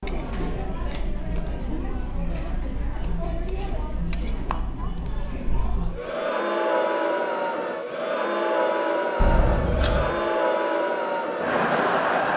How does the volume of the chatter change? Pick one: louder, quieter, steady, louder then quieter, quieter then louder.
louder.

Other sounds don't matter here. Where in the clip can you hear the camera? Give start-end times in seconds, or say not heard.
0.8-1.4, 4.5-5.1, 9.2-10.2.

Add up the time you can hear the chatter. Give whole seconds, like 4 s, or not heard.
12 s.